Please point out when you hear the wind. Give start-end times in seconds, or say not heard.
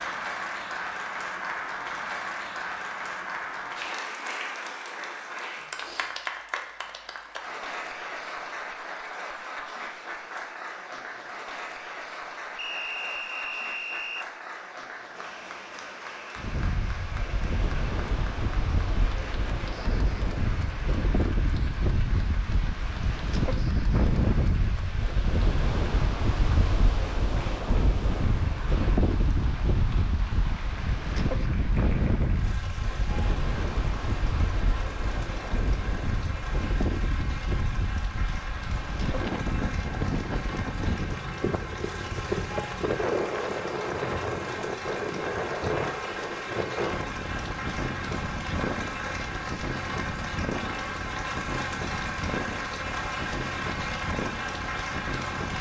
16.4-55.5.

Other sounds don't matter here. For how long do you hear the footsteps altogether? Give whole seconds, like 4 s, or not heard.
not heard.